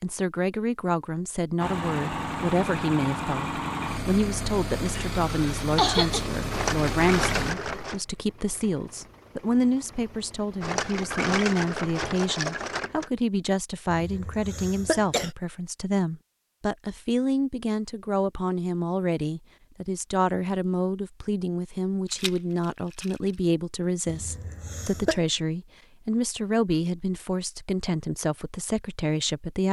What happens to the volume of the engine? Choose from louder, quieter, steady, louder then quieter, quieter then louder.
quieter.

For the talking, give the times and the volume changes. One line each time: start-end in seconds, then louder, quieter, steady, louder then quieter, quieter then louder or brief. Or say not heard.
0.0-29.6 steady.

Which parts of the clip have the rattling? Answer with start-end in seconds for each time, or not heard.
6.5-8.0, 10.6-13.1, 22.1-23.3.